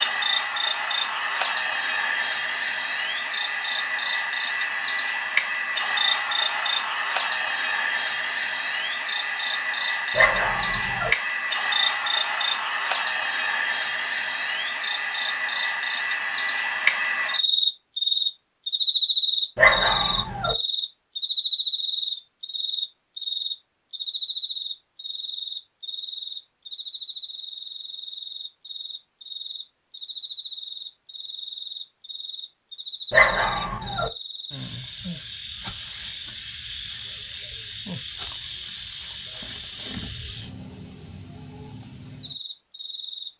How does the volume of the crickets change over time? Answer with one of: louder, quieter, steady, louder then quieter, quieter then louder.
quieter.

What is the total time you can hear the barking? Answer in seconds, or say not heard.
3 s.